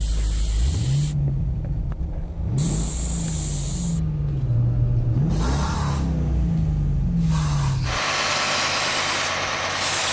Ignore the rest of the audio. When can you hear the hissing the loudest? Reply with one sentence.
The volume of the hissing peaks at 5 seconds.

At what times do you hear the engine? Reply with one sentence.
You can hear the engine from 0.0 to 10.0 s.